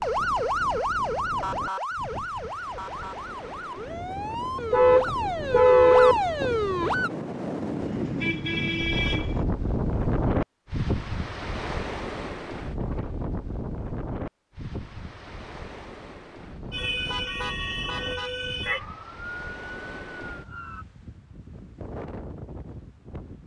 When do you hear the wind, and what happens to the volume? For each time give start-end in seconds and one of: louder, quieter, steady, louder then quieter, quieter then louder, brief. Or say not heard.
0.0-23.4 louder then quieter.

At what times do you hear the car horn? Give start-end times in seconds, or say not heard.
4.7-6.2, 7.8-9.4, 16.4-18.3.